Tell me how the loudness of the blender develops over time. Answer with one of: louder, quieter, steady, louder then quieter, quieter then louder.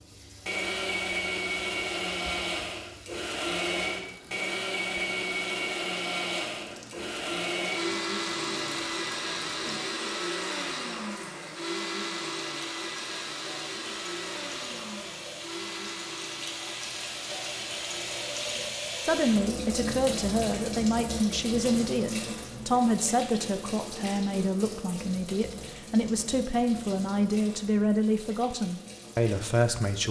quieter.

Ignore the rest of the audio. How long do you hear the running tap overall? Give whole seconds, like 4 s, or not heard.
30 s.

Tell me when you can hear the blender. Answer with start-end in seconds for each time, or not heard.
0.0-18.6.